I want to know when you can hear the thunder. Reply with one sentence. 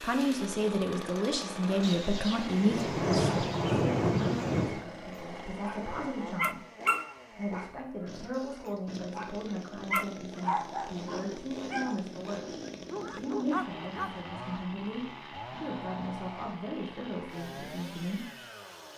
You can hear the thunder from 1.8 to 4.8 s.